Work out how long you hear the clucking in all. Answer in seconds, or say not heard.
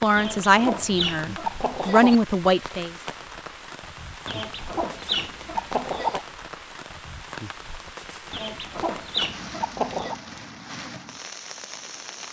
6 s.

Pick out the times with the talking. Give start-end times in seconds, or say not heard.
0.0-2.9.